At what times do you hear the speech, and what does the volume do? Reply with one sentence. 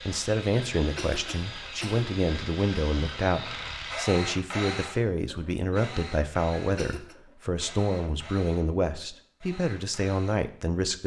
You can hear the speech from 0.1 to 11.0 s, at a steady volume.